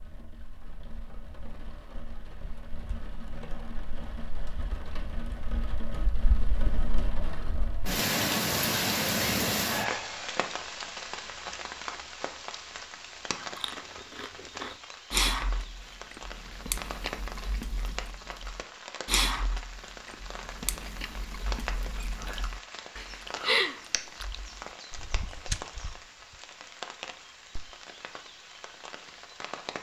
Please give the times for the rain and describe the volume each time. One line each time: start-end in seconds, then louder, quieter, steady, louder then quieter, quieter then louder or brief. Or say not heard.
0.0-29.7 louder then quieter.